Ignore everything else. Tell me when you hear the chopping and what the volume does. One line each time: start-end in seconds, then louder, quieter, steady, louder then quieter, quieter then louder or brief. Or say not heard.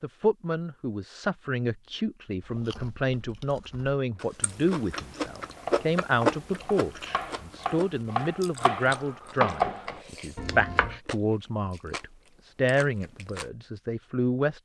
5.3-11.0 louder then quieter.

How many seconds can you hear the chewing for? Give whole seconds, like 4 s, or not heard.
11 s.